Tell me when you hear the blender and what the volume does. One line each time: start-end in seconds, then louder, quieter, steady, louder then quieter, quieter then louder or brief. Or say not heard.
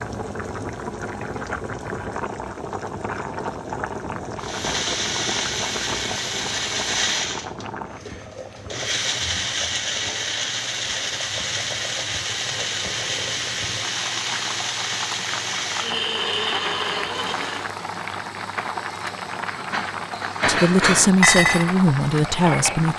4.4-17.7 steady.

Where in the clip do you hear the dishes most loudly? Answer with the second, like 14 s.
21 s.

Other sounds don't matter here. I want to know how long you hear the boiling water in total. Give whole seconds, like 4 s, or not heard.
23 s.